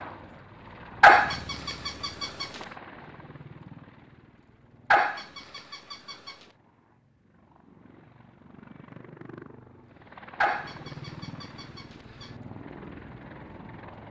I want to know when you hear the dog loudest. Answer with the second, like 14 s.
1 s.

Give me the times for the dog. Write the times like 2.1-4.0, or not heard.
1.0-2.5, 4.9-6.3, 10.4-12.3.